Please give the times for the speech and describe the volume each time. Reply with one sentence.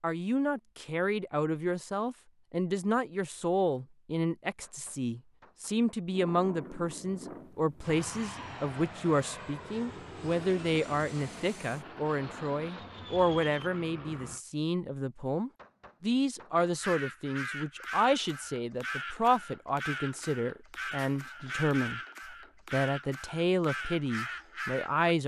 You can hear the speech from 0.0 to 25.2 s, at a steady volume.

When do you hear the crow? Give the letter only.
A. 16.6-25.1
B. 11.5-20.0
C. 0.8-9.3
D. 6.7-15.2
A.